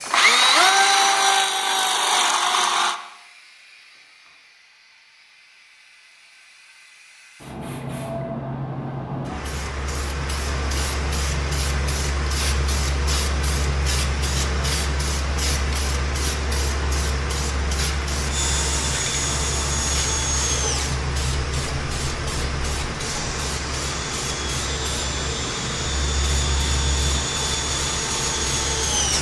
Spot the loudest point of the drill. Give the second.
1 s.